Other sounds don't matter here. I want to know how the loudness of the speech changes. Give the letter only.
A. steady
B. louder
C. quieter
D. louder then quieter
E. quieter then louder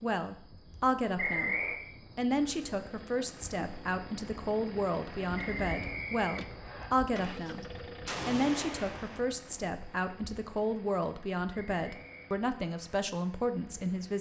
A.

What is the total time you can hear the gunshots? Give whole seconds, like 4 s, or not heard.
2 s.